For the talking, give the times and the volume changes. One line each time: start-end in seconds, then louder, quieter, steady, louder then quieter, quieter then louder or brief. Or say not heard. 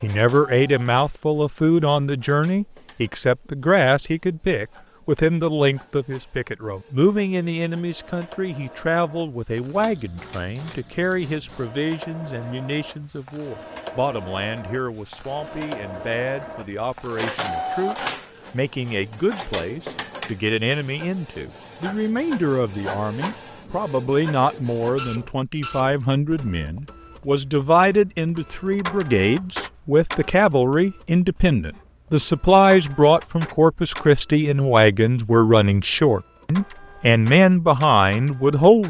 0.0-38.8 quieter then louder.